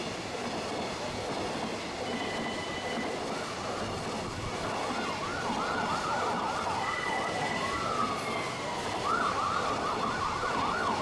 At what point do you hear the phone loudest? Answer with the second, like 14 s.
7 s.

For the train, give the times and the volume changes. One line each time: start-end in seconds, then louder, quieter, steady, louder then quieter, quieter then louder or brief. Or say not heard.
0.0-10.9 steady.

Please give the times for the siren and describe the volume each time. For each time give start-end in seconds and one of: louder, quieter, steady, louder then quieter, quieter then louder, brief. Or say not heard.
3.5-10.9 louder.